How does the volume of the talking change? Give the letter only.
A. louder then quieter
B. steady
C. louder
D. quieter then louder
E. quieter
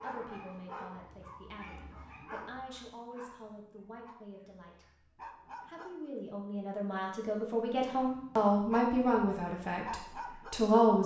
C.